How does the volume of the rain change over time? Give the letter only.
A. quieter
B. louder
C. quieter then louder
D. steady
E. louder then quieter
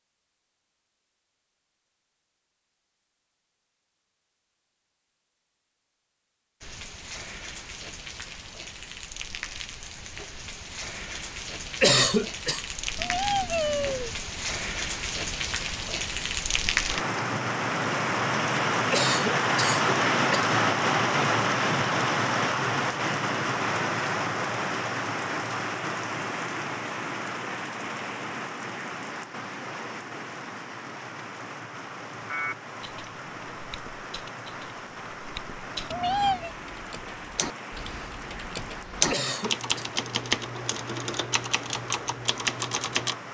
E.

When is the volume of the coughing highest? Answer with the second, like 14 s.
12 s.